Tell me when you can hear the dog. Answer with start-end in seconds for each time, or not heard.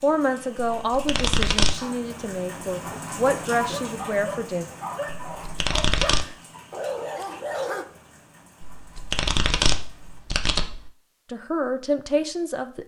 2.8-7.8.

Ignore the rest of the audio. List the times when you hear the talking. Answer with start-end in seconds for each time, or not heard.
0.0-4.7, 11.3-12.8.